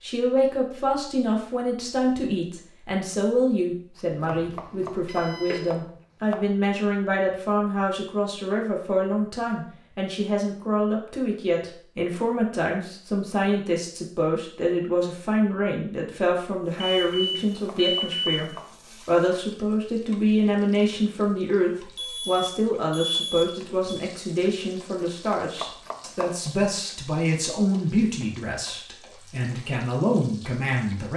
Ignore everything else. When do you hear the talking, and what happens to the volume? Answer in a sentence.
You can hear the talking from 0.0 to 31.1 s, at a steady volume.